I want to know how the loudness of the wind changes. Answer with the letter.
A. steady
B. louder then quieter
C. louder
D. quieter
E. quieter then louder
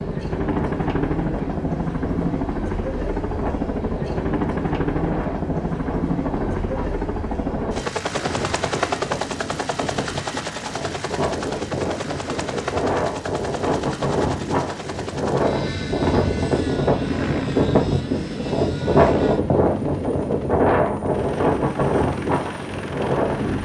C.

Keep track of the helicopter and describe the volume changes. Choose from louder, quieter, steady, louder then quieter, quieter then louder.
quieter.